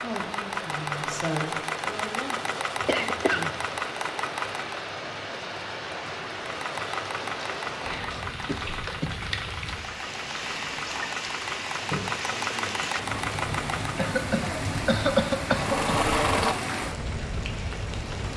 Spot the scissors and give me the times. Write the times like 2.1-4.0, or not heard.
not heard.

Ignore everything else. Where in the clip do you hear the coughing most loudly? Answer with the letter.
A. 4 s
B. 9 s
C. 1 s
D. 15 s
D.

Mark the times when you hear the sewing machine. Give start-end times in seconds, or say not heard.
0.0-5.0, 6.5-14.0, 15.4-18.3.